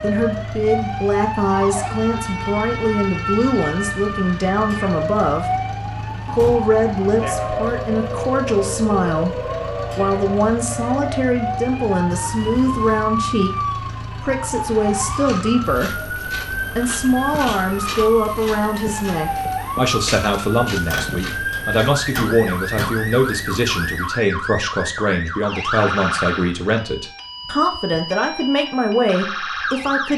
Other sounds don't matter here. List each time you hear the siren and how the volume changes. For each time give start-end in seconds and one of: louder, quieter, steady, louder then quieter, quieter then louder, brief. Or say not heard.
0.0-30.1 steady.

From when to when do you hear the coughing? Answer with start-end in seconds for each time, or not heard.
not heard.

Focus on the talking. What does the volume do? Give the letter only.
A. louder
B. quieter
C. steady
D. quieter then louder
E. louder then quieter
C.